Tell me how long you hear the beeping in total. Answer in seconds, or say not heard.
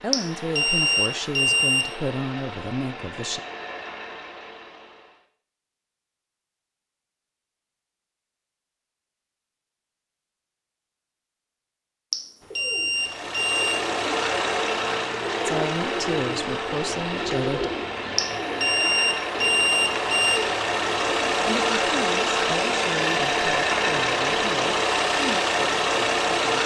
6 s.